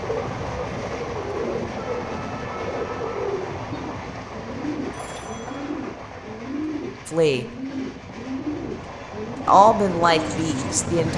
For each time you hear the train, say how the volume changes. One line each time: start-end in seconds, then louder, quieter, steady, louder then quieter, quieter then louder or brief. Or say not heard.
0.0-11.1 quieter then louder.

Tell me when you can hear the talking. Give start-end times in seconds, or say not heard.
7.0-7.5, 9.4-11.1.